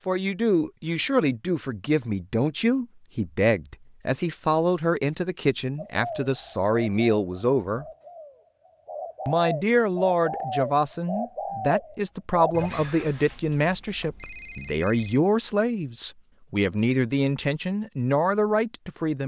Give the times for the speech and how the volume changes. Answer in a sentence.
You can hear the speech from 0.1 to 7.8 s, at a steady volume; and from 9.2 to 19.2 s, at a steady volume.